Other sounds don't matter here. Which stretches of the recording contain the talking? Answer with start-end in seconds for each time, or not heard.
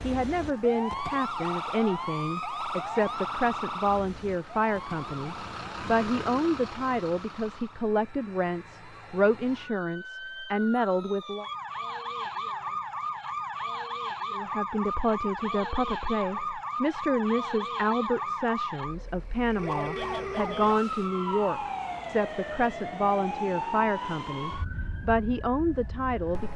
0.0-11.4, 14.3-26.5.